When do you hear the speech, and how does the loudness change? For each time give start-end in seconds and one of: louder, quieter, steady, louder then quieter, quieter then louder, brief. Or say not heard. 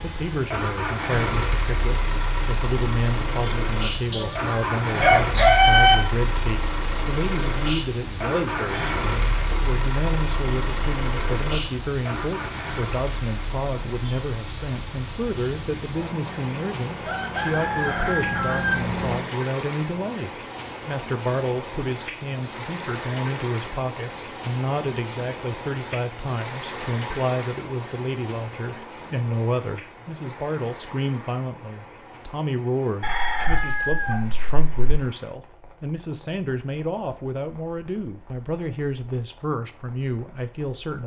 0.0-41.0 steady.